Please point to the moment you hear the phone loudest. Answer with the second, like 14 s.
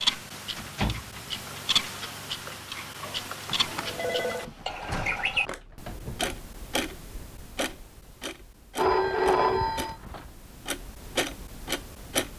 9 s.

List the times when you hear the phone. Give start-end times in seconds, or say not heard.
3.5-4.5, 8.8-9.9.